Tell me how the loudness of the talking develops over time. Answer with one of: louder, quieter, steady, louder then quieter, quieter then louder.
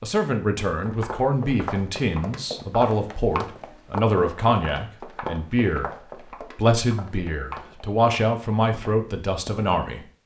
steady.